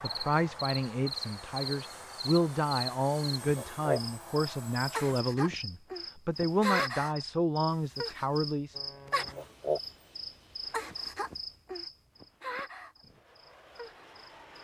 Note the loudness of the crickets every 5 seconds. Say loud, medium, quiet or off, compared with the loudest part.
loud, loud, medium.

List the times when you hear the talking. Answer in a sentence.
The talking can be heard from 0.0 to 8.8 s.